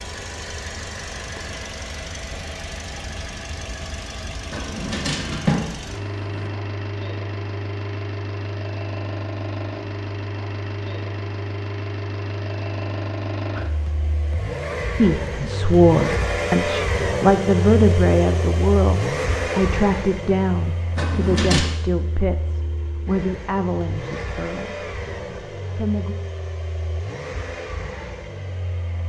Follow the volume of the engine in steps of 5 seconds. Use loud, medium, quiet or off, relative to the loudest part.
medium, medium, medium, loud, medium, medium.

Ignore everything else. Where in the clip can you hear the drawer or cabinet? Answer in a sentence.
The drawer or cabinet can be heard from 4.5 to 6.5 s and from 20.9 to 21.6 s.